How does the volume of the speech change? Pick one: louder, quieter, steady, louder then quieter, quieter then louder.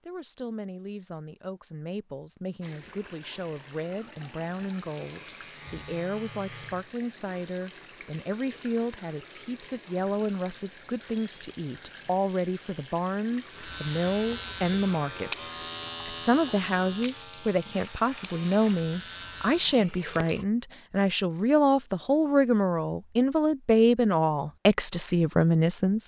louder.